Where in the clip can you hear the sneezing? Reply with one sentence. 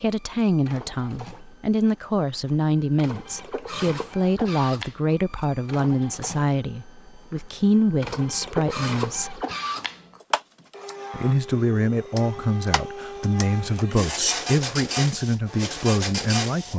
The sneezing can be heard from 13.8 to 14.4 s.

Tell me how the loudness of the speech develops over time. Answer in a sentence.
The loudness of the speech stays about the same.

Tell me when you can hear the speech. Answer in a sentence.
You can hear the speech from 0.0 to 9.4 s and from 11.1 to 16.7 s.